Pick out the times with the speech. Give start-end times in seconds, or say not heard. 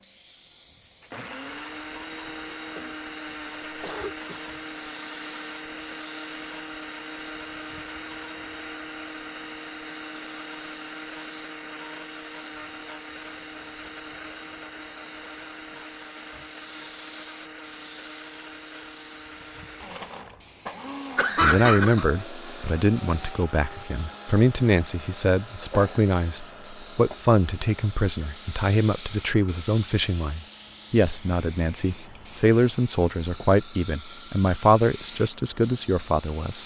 21.4-36.6.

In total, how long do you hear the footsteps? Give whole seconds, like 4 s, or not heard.
not heard.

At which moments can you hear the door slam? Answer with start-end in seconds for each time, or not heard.
not heard.